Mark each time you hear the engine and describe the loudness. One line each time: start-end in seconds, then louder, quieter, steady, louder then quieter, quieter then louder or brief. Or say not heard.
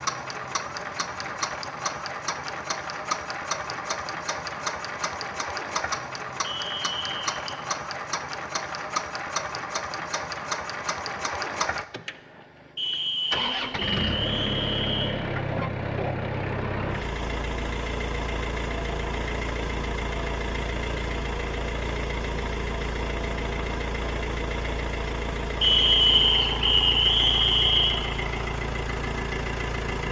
0.0-30.0 steady.